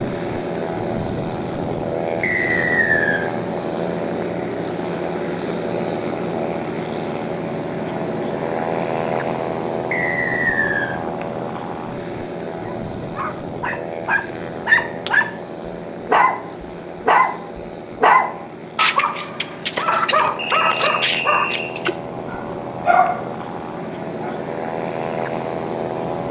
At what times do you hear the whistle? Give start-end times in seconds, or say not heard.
2.2-3.2, 9.9-10.9, 20.4-21.7.